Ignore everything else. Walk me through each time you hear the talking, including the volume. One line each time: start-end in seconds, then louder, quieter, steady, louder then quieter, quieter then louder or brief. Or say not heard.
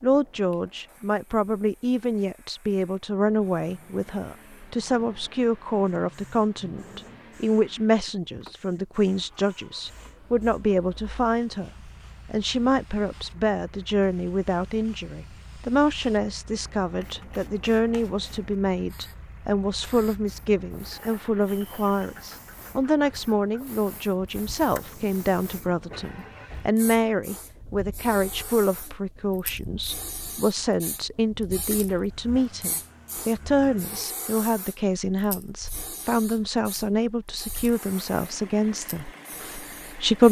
0.0-40.2 steady.